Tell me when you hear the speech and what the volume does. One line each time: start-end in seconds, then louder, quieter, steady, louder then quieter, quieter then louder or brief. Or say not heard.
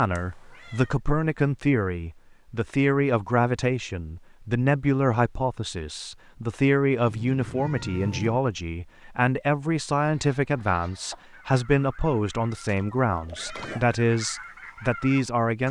0.0-15.6 steady.